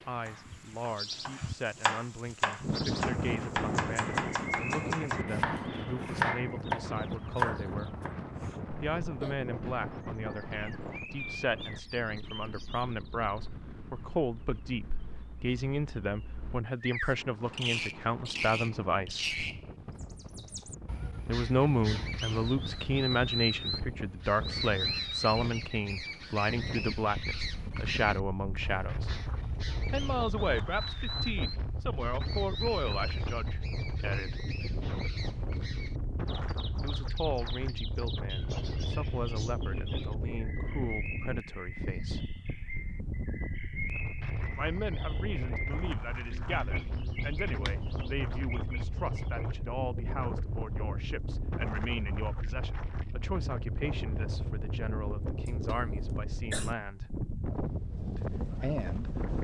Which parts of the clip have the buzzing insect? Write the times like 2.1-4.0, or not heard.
not heard.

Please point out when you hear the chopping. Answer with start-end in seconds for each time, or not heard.
0.2-8.2.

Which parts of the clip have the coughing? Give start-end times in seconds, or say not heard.
8.2-9.3, 55.5-56.7.